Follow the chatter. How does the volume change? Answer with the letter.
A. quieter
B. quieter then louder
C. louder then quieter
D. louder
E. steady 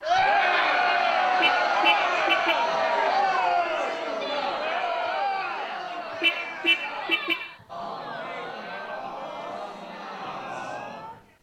A.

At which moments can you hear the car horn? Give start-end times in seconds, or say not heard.
1.4-2.5, 6.2-7.5.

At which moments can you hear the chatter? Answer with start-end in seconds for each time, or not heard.
0.0-11.3.